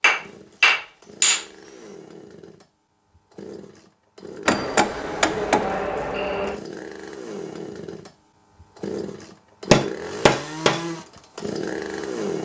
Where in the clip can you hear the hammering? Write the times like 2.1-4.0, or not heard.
0.0-1.4, 4.5-6.6, 9.7-10.8.